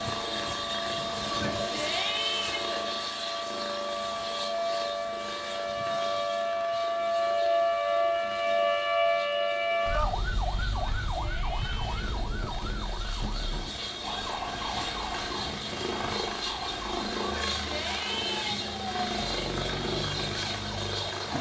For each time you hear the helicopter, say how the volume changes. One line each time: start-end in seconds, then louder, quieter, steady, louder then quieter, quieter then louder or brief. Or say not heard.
0.0-21.3 quieter then louder.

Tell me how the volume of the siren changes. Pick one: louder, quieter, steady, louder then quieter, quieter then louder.
louder then quieter.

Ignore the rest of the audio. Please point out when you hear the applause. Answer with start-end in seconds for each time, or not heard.
not heard.